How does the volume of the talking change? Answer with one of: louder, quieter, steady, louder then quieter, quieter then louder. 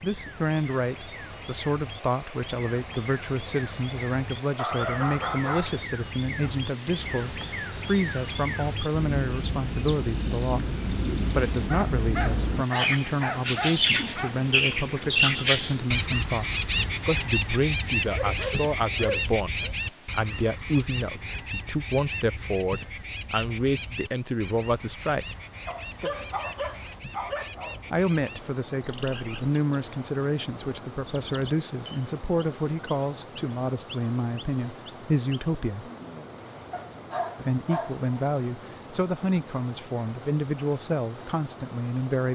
steady.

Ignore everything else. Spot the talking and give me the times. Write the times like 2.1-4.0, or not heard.
0.0-25.4, 27.9-35.9, 37.4-42.3.